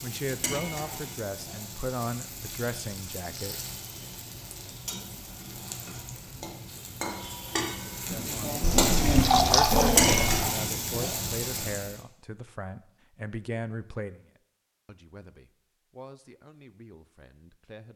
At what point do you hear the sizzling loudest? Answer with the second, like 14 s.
10 s.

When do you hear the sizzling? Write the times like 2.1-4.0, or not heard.
0.0-11.9.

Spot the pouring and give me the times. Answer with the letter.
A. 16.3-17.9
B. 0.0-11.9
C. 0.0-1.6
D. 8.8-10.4
D.